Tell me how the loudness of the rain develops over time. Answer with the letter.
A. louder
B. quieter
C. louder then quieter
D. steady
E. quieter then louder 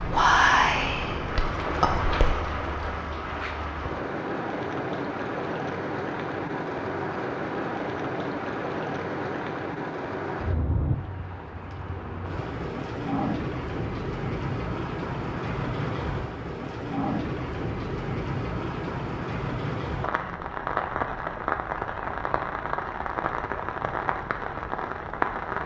D.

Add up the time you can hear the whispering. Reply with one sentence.
The whispering can be heard for 3 seconds in total.